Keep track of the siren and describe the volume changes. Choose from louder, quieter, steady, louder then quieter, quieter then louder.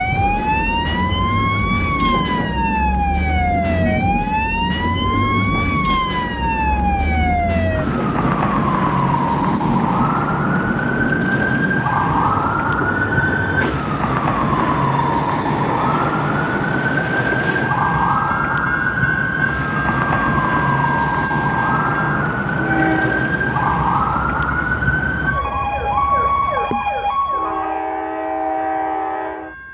steady.